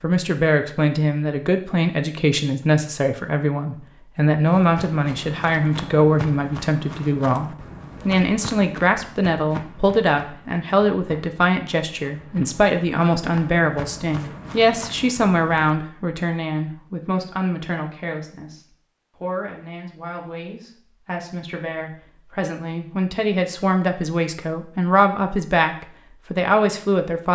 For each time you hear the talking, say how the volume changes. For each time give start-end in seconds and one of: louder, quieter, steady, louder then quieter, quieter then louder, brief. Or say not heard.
0.0-27.3 quieter then louder.